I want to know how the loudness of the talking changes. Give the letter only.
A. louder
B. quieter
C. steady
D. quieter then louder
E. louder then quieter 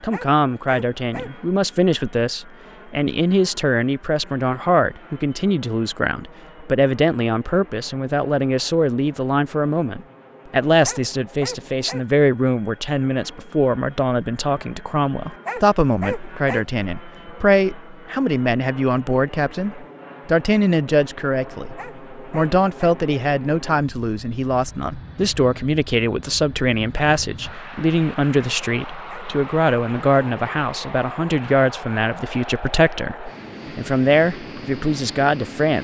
C.